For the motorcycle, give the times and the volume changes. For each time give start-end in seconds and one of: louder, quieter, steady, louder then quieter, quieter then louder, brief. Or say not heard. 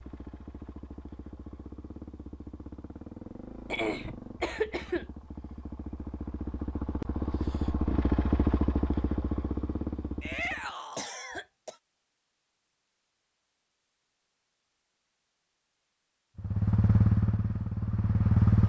0.0-10.8 louder
16.4-18.6 brief.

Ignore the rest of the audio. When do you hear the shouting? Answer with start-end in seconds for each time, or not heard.
10.2-11.1.